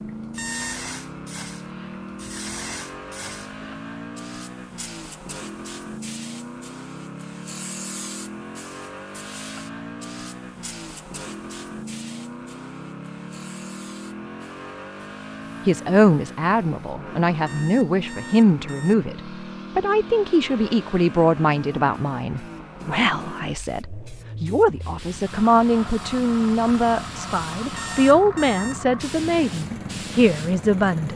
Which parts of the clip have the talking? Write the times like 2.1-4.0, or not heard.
15.7-31.1.